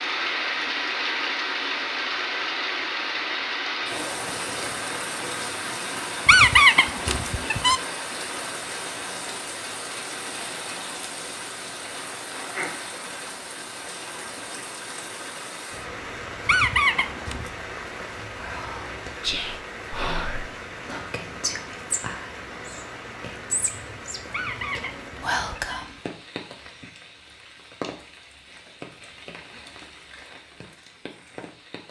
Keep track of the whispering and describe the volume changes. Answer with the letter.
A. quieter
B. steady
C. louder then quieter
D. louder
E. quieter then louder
E.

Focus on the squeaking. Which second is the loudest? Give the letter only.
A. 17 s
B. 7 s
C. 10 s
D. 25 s
B.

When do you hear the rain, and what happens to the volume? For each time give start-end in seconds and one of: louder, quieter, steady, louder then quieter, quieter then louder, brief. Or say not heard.
0.0-31.8 quieter.